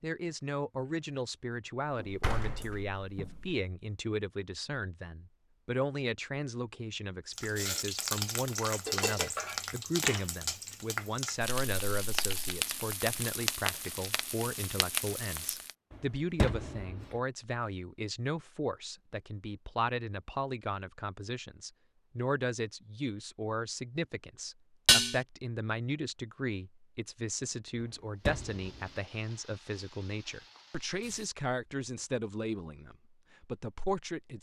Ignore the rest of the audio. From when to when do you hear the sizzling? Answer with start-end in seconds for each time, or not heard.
7.3-15.8, 28.4-31.2.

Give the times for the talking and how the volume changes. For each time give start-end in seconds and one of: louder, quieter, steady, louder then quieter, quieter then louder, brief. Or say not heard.
0.0-34.3 steady.